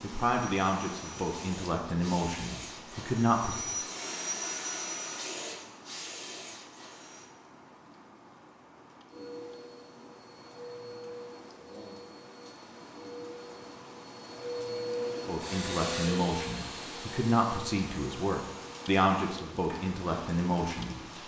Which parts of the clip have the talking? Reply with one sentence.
The talking can be heard from 0.0 to 3.6 s and from 15.2 to 20.9 s.